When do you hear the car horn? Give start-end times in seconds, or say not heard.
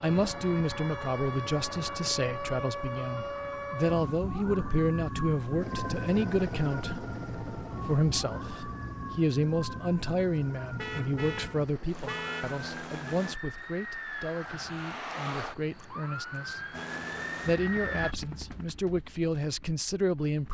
10.8-12.7.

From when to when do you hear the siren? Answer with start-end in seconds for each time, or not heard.
0.0-18.1.